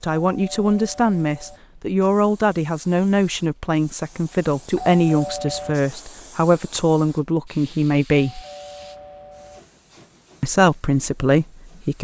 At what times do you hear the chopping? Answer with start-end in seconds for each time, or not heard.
not heard.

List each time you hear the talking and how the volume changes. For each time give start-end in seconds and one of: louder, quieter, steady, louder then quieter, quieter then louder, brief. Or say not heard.
0.0-8.4 steady
10.4-11.9 brief.